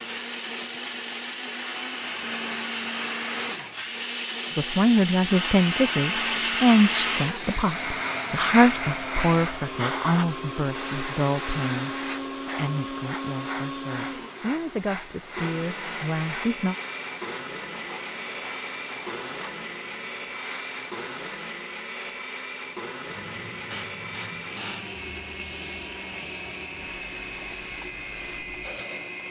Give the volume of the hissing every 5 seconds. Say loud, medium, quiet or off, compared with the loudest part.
medium, loud, medium, quiet, quiet, quiet.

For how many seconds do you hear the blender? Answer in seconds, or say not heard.
29 s.